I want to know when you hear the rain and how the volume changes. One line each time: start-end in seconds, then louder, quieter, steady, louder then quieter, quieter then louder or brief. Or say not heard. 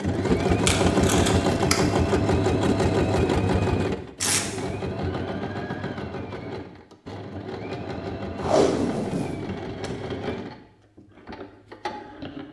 not heard.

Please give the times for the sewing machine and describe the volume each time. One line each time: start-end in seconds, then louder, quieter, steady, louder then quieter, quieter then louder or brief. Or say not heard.
0.0-12.4 quieter.